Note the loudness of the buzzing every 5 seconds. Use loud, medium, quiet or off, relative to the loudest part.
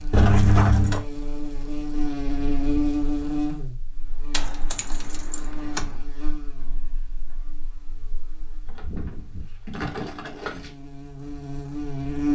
loud, quiet, loud.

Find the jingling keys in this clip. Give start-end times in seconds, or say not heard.
0.1-1.1, 4.3-6.0, 8.7-10.8.